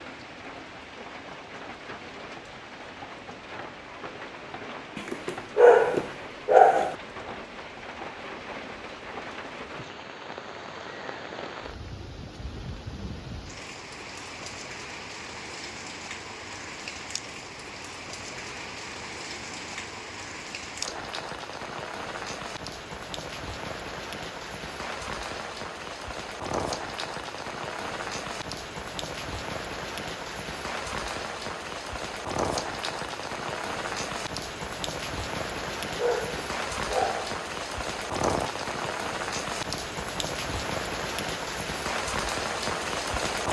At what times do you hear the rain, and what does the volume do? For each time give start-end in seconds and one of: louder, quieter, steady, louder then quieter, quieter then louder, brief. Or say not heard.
0.0-43.4 louder.